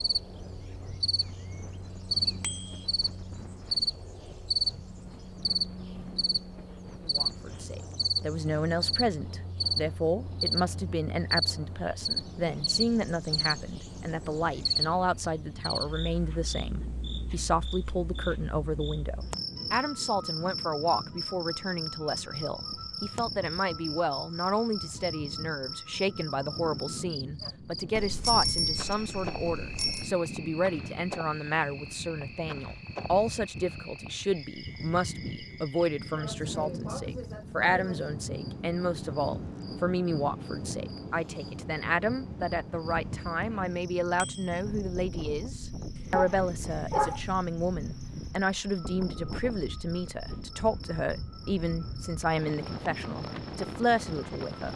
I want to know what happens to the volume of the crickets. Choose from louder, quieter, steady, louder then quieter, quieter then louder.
quieter.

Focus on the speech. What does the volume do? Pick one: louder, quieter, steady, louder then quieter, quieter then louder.
steady.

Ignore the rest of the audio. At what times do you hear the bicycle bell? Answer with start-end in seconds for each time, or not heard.
2.4-2.9, 27.9-30.1, 44.1-44.6.